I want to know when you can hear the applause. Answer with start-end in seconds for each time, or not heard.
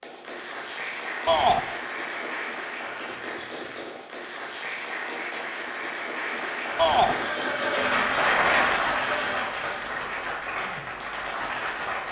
0.0-12.0.